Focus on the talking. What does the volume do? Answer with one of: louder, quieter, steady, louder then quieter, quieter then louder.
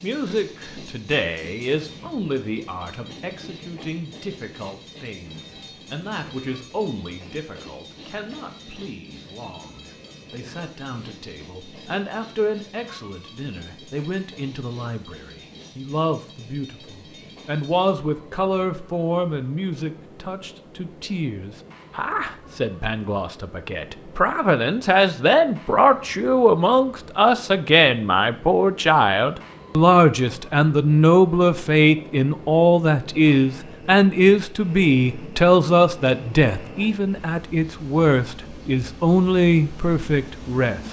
louder.